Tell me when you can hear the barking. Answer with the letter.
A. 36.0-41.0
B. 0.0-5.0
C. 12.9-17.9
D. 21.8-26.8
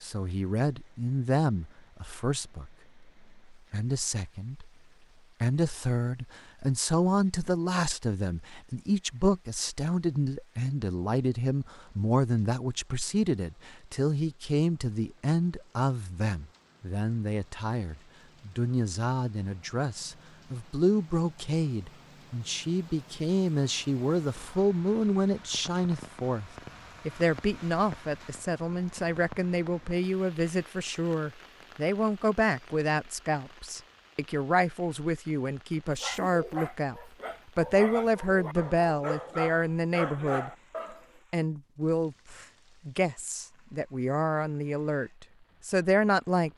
A.